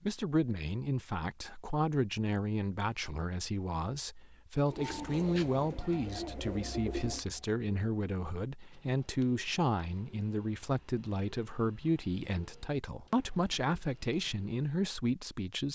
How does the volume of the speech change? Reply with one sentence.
The loudness of the speech stays about the same.